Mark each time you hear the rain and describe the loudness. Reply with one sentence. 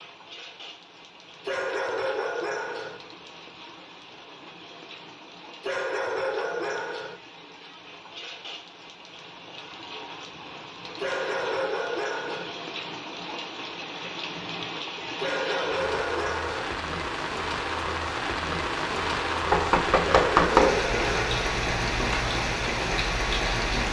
You can hear the rain from 0.0 to 23.8 s, getting louder.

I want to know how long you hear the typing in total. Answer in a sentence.
The typing can be heard for 3 seconds in total.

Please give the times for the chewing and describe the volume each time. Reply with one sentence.
The chewing can't be heard in this clip.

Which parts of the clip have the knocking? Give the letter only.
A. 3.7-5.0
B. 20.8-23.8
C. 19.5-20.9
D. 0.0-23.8
C.